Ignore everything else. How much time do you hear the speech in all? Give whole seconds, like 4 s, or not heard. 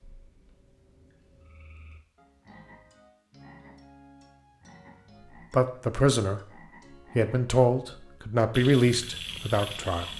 5 s.